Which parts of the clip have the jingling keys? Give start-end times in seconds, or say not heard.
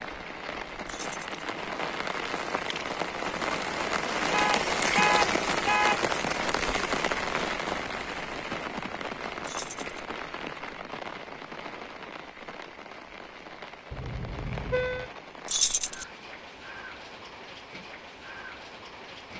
0.8-1.2, 9.4-10.0, 15.4-16.1.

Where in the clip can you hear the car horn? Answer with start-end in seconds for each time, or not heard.
4.3-6.0, 13.9-15.1.